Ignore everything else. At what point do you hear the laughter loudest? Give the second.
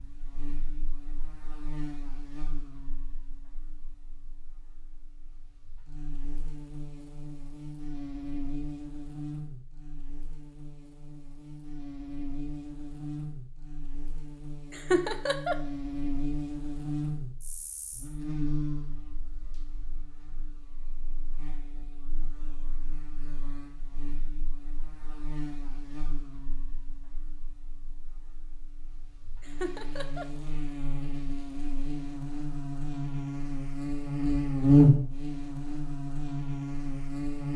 15 s.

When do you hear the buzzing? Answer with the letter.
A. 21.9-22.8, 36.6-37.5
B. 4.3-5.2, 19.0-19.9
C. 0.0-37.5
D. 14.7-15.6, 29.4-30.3
C.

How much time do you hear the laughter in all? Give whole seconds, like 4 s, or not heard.
2 s.